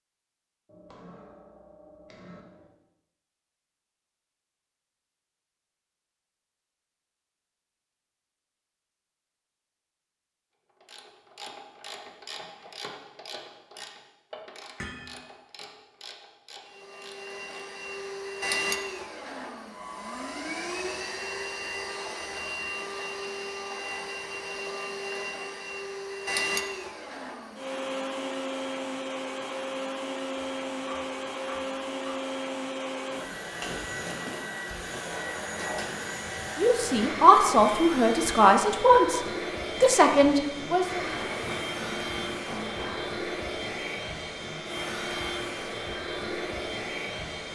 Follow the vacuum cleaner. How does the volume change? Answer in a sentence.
The loudness of the vacuum cleaner stays about the same.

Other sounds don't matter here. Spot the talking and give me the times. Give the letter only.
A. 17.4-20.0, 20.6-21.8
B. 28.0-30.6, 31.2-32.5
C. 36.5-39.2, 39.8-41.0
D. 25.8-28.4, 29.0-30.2
C.